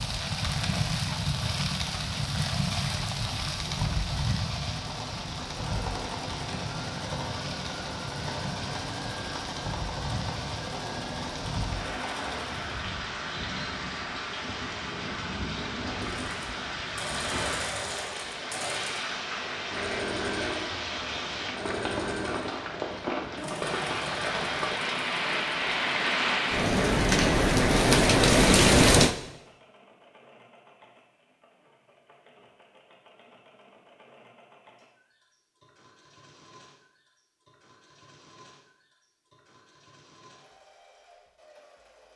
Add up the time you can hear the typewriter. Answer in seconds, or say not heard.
not heard.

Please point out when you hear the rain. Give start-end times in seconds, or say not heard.
0.0-29.1.